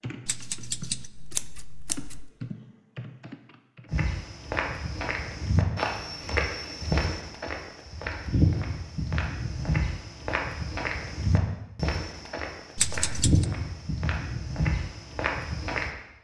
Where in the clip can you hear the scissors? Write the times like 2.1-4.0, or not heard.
0.2-2.3, 12.8-13.4.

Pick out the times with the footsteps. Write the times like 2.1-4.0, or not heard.
3.9-15.9.